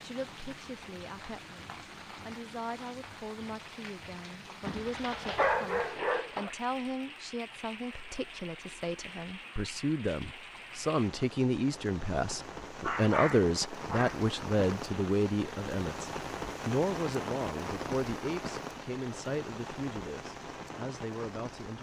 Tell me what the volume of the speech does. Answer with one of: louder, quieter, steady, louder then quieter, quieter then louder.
louder then quieter.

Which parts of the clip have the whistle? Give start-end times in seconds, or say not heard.
not heard.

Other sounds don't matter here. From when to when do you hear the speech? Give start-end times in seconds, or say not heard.
0.0-21.7.